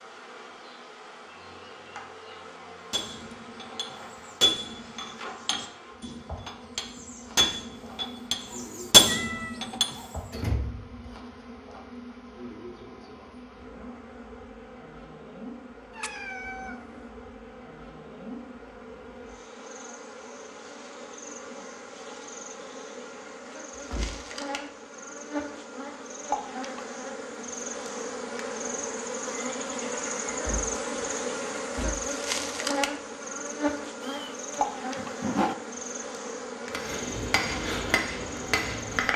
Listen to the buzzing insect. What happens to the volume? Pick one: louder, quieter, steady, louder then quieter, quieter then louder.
louder.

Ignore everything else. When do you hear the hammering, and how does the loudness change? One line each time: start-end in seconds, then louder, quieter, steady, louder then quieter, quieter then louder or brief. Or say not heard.
2.9-9.9 quieter then louder
36.7-39.1 brief.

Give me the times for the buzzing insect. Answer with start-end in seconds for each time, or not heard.
0.0-39.1.